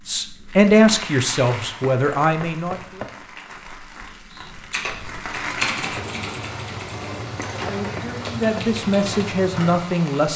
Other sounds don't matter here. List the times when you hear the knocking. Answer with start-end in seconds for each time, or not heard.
1.8-3.1, 7.3-8.7.